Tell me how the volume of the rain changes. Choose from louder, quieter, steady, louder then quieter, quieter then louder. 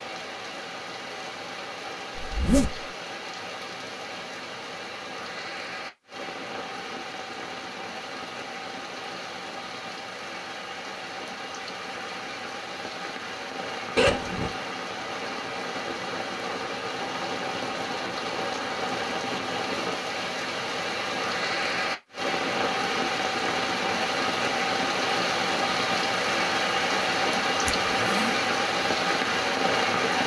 louder.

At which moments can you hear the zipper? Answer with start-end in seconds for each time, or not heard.
2.1-2.9, 13.9-14.6, 27.6-28.4.